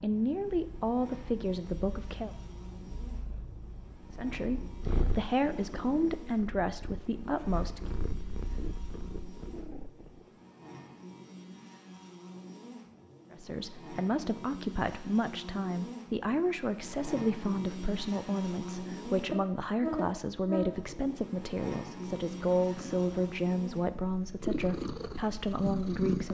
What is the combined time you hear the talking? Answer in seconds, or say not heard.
19 s.